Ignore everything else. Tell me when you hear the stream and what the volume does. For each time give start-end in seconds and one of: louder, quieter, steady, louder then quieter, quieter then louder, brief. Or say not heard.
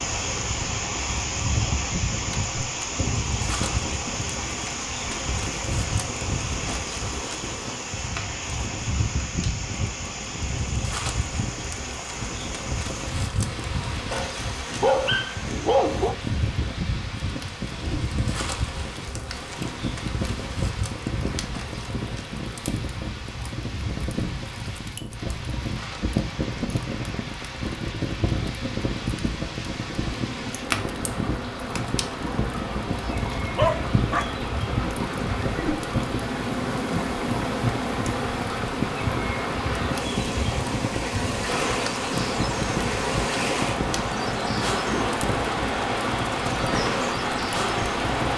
0.0-48.3 quieter then louder.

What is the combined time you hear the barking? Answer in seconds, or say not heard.
3 s.